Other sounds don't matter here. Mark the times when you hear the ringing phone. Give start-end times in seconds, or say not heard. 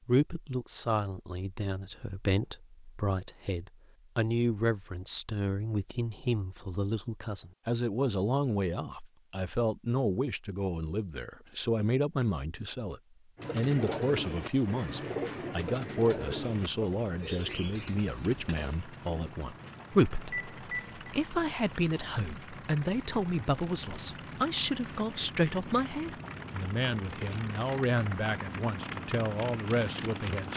20.3-21.0.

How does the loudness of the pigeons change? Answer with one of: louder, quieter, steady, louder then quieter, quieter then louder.
quieter.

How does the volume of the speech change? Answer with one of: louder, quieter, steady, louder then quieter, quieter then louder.
steady.